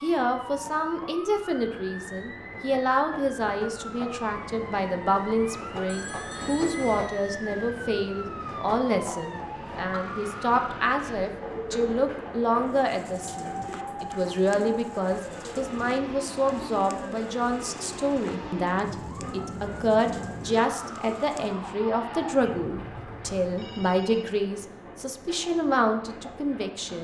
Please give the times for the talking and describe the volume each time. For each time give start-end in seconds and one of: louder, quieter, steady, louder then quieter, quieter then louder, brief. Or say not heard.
0.0-26.9 steady.